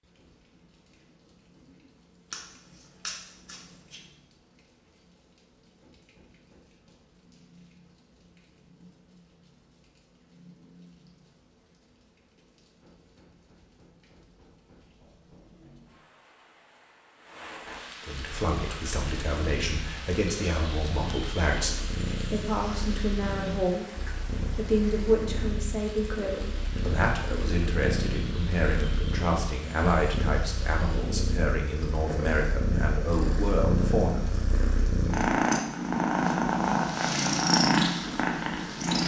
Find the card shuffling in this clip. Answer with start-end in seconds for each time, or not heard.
2.3-4.0.